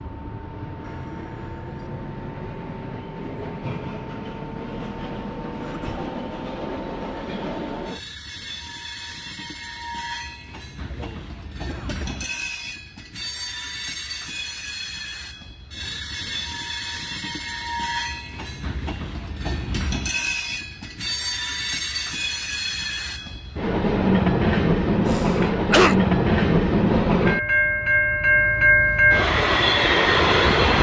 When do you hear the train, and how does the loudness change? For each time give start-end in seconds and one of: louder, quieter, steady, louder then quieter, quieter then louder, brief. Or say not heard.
0.0-30.7 louder.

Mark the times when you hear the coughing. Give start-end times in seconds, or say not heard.
5.6-6.0, 10.9-12.3, 25.1-25.9.